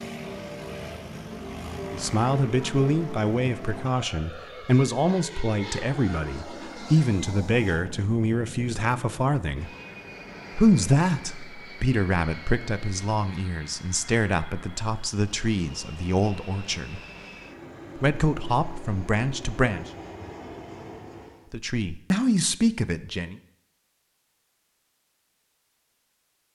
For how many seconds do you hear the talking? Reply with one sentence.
The talking can be heard for 18 seconds in total.